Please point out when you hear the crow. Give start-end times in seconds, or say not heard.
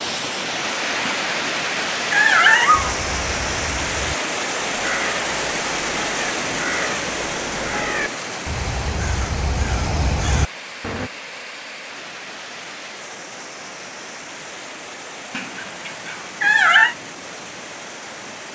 2.7-11.1.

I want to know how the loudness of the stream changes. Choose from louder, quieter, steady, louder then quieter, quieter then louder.
quieter.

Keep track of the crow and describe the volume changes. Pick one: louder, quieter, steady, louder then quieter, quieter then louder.
louder.